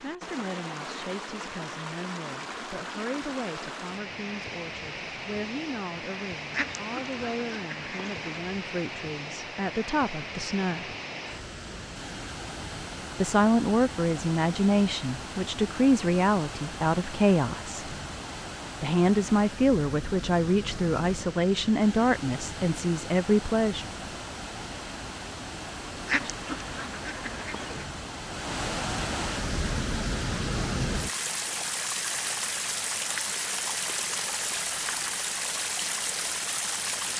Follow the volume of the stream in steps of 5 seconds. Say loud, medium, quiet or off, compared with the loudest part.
medium, medium, medium, medium, medium, loud, loud, loud.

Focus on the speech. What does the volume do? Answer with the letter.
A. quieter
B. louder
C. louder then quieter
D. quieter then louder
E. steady
B.